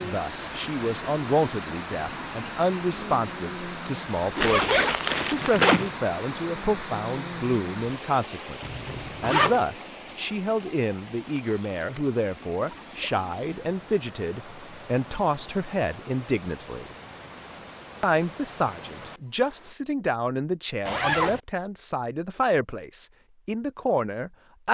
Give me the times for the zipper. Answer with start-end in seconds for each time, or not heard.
4.3-5.9, 8.6-9.7, 20.9-21.4.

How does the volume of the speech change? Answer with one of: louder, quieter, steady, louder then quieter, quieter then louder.
steady.